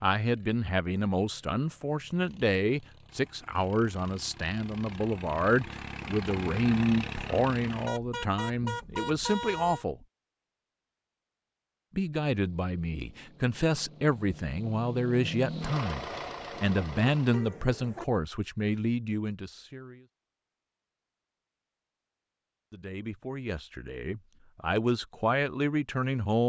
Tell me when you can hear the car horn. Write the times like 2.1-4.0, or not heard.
7.8-9.8, 16.7-18.1.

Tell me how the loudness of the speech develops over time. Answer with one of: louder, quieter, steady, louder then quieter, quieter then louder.
steady.